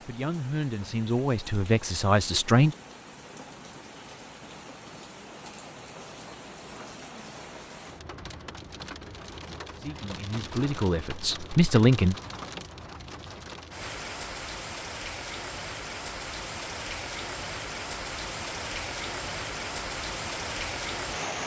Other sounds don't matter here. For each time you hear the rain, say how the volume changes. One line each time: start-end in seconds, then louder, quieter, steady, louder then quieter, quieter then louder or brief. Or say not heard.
0.0-21.4 louder.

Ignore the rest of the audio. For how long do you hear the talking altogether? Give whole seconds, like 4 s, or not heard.
5 s.